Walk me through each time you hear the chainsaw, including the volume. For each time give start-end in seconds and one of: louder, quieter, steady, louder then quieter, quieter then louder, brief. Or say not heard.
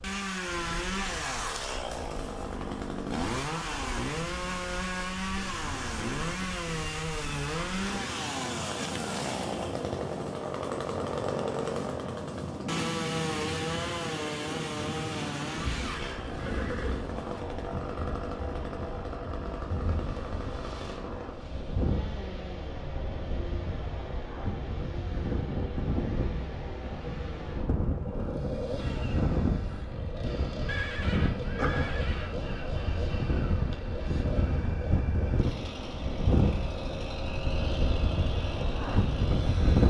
0.0-39.8 quieter.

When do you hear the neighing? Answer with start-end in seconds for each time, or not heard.
16.4-17.1, 30.6-32.4.